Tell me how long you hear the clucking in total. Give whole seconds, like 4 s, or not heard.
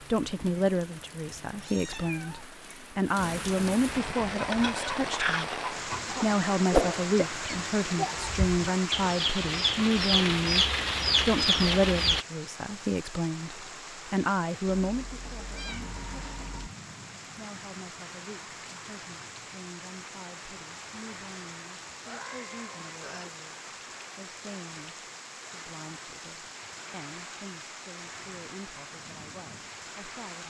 8 s.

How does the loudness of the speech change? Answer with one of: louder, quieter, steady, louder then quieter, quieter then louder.
quieter.